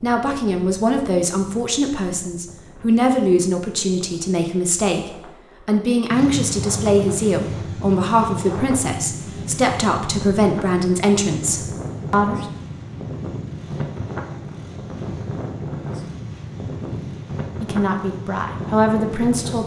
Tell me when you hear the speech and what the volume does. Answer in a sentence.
You can hear the speech from 0.0 to 12.4 s, at a steady volume; and briefly from 17.6 to 19.6 s.